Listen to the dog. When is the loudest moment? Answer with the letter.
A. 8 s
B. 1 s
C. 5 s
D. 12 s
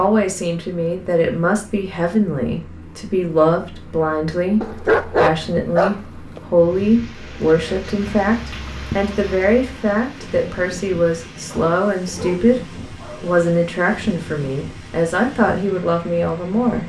C.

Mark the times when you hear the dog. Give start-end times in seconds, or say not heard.
4.6-6.4, 11.4-13.4.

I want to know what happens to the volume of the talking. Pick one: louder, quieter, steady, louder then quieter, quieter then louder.
steady.